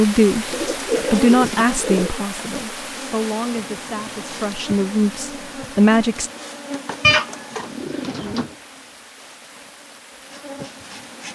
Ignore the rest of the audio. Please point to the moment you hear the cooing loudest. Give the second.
7 s.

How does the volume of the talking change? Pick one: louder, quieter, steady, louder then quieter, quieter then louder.
quieter then louder.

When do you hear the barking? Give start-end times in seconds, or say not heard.
not heard.